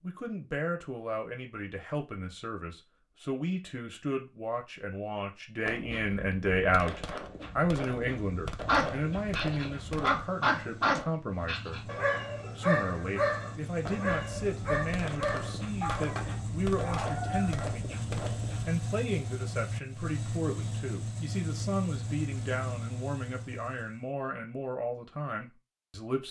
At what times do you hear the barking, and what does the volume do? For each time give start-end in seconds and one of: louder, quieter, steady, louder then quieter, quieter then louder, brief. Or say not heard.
8.7-17.7 quieter.